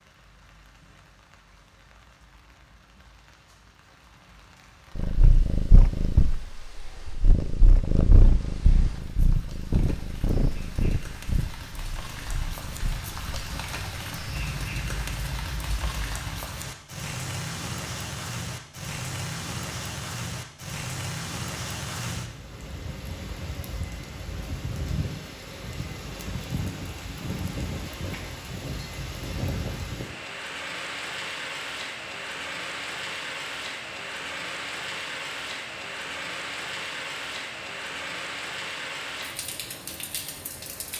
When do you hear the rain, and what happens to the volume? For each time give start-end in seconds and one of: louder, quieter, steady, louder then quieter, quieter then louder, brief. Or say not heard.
0.0-40.9 louder.